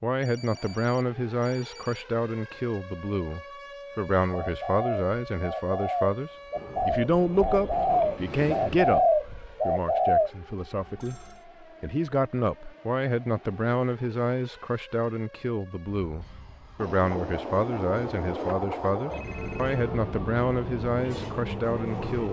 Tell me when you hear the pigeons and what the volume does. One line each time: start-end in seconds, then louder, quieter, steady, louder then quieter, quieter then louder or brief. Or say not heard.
4.3-10.3 louder.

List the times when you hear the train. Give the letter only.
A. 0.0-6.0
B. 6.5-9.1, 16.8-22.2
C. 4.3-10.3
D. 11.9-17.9
B.